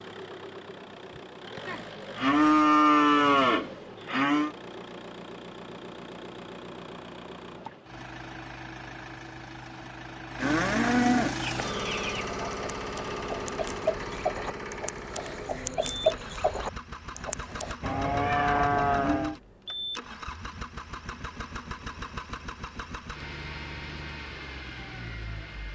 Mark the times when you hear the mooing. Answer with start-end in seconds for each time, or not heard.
1.6-4.5, 10.4-11.6, 17.8-19.4.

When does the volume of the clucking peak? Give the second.
16 s.